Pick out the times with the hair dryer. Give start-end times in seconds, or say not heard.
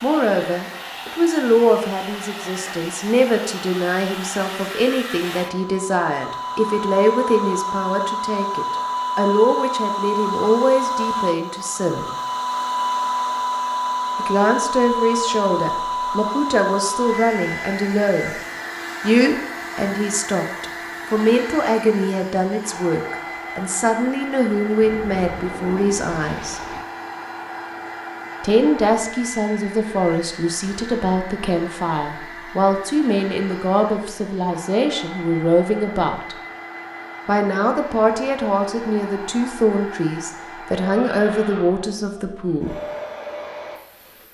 0.0-44.2.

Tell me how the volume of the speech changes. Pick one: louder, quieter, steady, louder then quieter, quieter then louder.
steady.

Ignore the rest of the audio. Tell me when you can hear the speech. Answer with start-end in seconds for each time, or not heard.
0.0-12.1, 14.2-18.4, 19.0-26.6, 28.4-36.4, 37.2-42.8.